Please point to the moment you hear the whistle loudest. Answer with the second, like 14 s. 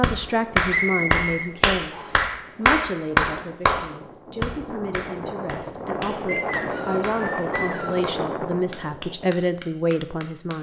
1 s.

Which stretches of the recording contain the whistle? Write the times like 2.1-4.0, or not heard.
0.7-2.2, 6.2-8.1.